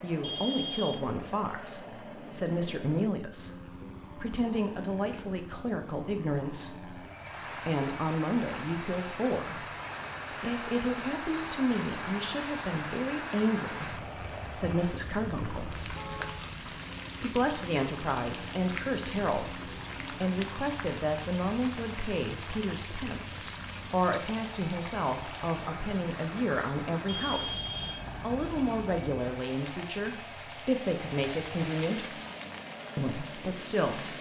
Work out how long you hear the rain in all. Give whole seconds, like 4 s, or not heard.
27 s.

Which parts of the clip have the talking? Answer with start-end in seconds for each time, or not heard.
0.0-7.0, 7.7-9.7, 10.3-15.8, 17.2-32.2, 33.0-34.1.